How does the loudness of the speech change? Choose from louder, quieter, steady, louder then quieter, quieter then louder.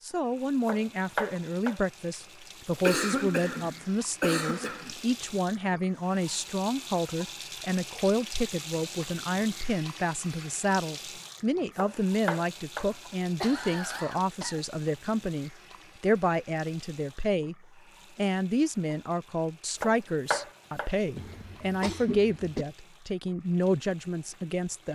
steady.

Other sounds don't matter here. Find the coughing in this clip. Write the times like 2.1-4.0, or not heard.
2.8-5.0, 12.9-14.6, 21.1-22.6.